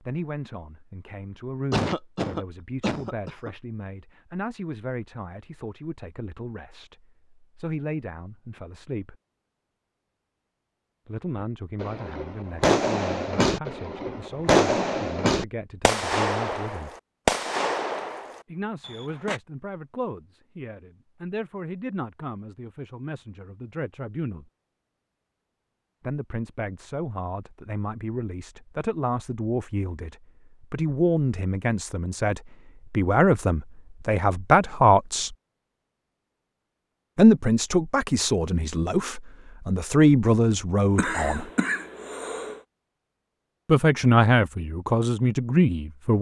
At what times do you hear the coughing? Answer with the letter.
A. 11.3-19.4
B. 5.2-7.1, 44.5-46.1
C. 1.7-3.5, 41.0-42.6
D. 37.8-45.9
C.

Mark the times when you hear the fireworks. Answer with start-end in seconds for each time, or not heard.
11.3-19.4.